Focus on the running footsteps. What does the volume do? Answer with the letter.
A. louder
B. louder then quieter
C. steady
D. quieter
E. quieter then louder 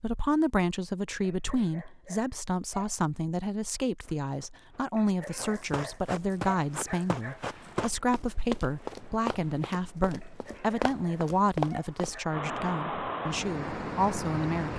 A.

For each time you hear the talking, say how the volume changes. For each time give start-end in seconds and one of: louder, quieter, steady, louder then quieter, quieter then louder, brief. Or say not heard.
0.0-14.7 steady.